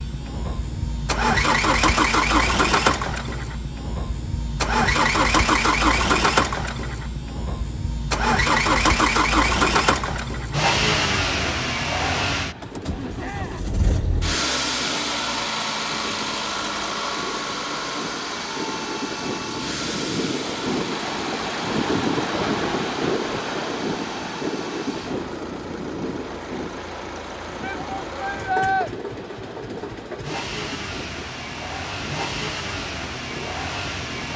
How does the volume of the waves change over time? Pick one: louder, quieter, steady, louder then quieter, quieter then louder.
louder then quieter.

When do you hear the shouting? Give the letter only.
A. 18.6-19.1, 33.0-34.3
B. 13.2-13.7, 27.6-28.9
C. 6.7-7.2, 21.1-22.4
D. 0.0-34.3
B.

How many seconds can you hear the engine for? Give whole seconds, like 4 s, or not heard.
34 s.